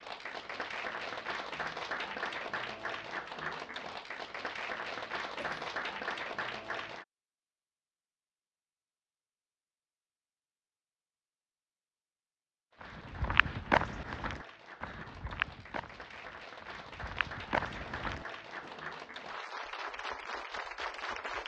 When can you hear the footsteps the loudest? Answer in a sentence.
The volume of the footsteps peaks at 14 seconds.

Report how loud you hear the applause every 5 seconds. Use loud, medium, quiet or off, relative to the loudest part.
loud, loud, quiet, medium, loud.